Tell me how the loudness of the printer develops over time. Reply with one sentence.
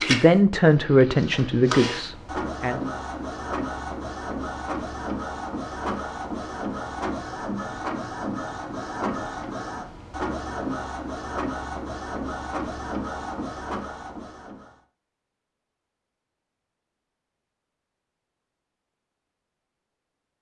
The volume of the printer stays about the same.